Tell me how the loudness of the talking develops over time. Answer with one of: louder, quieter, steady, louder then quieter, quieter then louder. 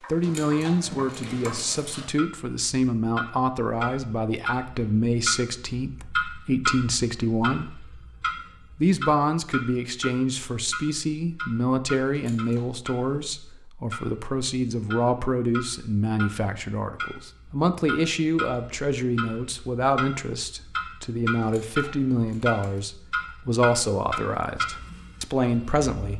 steady.